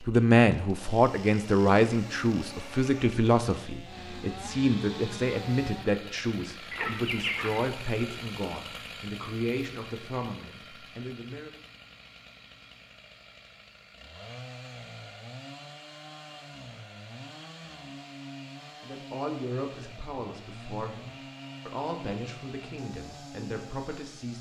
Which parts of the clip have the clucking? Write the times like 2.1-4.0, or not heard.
6.7-7.6.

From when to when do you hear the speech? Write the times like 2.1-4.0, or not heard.
0.1-11.5, 18.8-24.3.